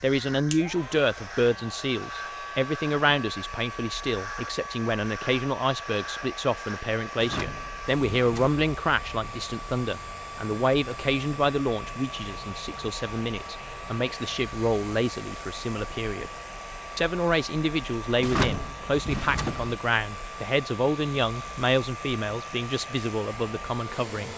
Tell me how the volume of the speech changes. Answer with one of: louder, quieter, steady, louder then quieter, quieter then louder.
steady.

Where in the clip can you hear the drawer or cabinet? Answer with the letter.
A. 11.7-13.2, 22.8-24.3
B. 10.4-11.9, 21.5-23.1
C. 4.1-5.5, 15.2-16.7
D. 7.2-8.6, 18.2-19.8
D.